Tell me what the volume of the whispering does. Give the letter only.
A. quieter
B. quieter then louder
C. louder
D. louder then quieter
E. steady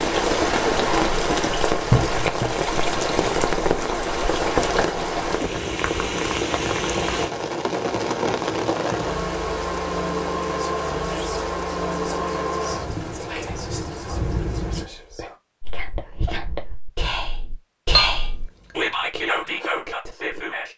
C.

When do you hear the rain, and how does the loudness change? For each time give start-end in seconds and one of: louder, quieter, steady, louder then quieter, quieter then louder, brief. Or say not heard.
0.0-14.9 quieter.